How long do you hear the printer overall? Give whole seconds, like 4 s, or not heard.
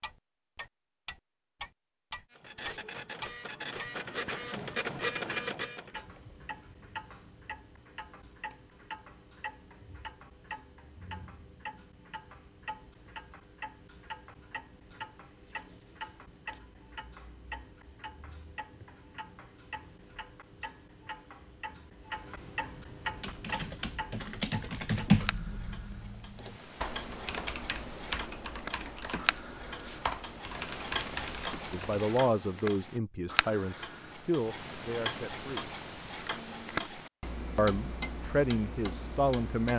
4 s.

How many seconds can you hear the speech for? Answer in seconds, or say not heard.
6 s.